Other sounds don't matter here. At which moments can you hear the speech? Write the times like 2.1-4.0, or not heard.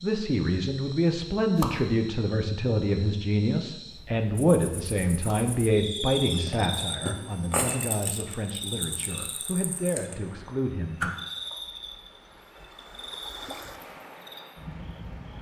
0.0-11.1.